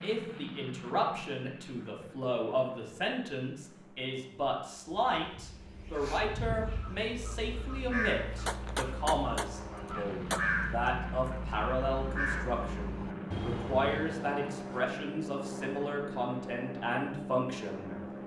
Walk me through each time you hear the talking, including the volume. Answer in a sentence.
You can hear the talking from 0.0 to 18.0 s, at a steady volume.